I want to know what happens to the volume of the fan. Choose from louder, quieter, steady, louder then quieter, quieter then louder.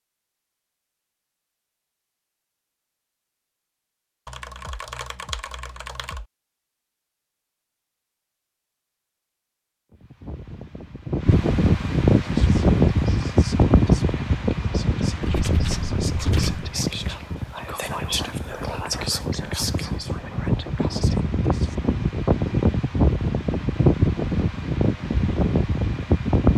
quieter then louder.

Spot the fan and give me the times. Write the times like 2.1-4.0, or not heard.
9.9-26.5.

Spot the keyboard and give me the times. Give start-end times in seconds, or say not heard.
4.2-6.2, 15.2-16.7.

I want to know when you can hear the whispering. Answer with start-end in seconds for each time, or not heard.
12.2-21.8.